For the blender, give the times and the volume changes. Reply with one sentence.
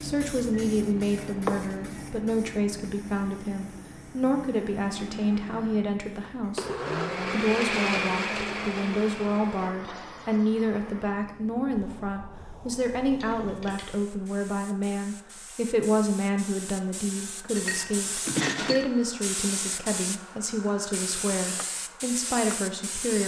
The blender can be heard from 0.5 to 11.2 s, getting louder then quieter.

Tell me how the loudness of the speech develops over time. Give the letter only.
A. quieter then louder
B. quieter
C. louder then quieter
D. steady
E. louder
D.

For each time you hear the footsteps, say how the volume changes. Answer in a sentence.
You can't hear the footsteps here.